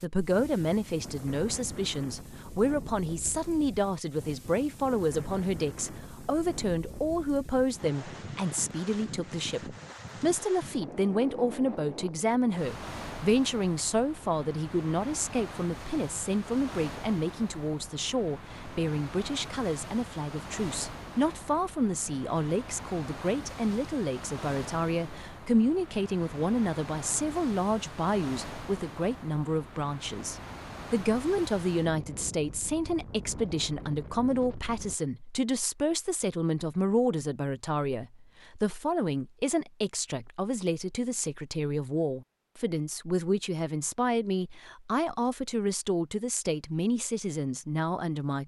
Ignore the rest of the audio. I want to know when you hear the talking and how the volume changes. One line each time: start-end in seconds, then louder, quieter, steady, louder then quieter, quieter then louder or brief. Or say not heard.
0.0-48.4 steady.